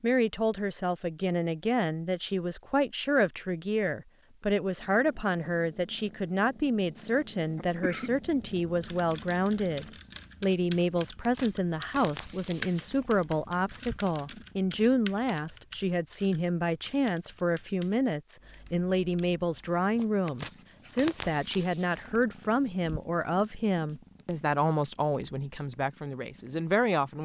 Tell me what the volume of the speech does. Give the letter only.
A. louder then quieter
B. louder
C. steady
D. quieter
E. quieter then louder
C.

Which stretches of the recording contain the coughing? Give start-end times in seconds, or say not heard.
7.5-8.1.